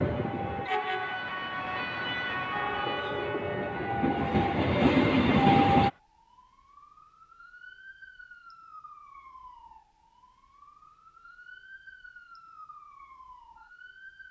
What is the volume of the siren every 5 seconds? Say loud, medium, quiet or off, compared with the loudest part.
loud, quiet, quiet.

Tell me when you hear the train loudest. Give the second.
5 s.